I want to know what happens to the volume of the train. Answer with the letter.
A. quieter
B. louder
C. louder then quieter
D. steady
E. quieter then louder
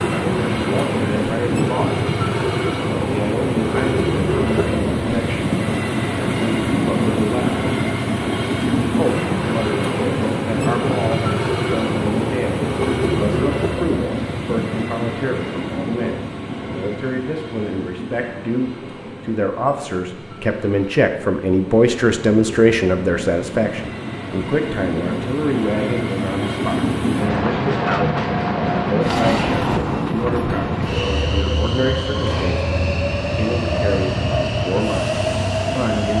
E.